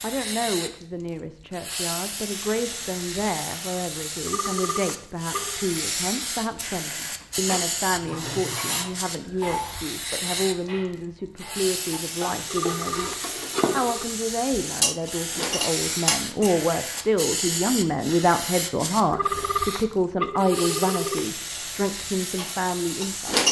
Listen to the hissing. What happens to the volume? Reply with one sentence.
The volume of the hissing stays about the same.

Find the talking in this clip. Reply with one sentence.
You can hear the talking from 0.0 to 23.4 s.